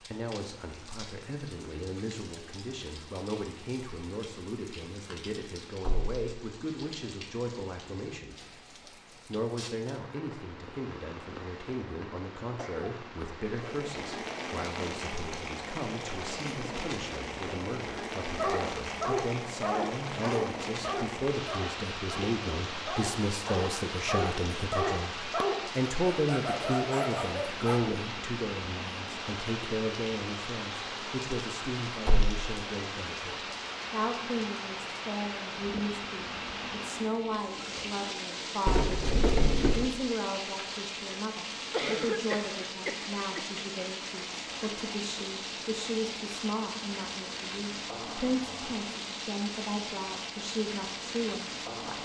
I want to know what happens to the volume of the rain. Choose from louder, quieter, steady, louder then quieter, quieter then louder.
louder.